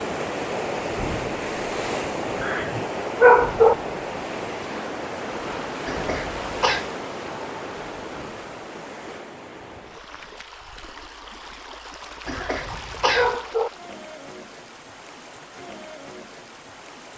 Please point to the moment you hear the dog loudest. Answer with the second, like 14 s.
3 s.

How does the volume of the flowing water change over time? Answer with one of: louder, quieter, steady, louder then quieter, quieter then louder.
quieter.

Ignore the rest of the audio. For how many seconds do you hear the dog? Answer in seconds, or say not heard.
3 s.